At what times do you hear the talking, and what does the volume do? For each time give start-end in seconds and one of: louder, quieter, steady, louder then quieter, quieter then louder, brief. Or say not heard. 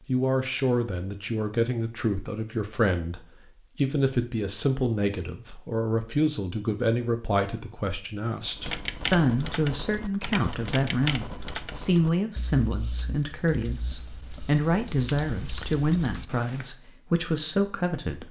0.1-18.2 steady.